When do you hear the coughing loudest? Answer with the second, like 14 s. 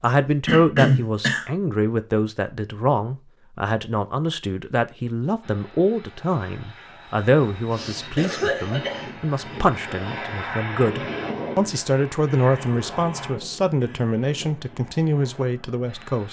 1 s.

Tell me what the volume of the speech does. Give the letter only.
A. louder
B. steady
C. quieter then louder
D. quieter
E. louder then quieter
B.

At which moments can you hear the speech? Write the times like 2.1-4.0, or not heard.
0.0-16.2.